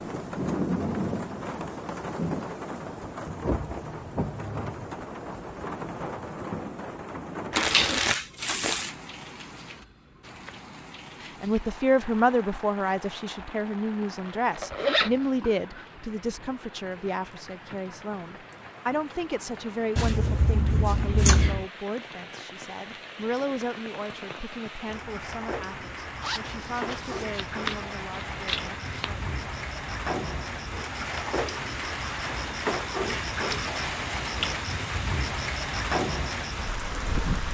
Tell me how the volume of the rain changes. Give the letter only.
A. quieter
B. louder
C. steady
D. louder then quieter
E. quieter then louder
E.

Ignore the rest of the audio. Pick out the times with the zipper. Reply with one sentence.
The zipper can be heard from 14.0 to 15.1 s and from 26.2 to 27.2 s.